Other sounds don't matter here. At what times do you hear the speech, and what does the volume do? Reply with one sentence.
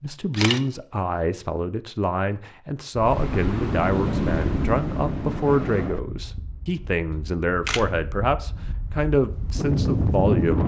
You can hear the speech from 0.0 to 10.6 s, at a steady volume.